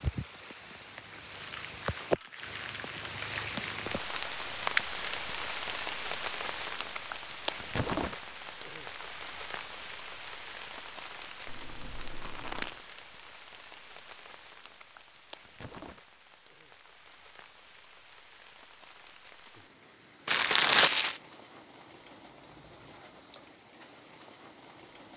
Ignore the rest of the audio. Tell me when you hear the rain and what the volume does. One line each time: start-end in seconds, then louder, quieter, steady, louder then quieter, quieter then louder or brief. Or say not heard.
0.0-25.1 quieter.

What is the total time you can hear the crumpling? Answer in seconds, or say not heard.
5 s.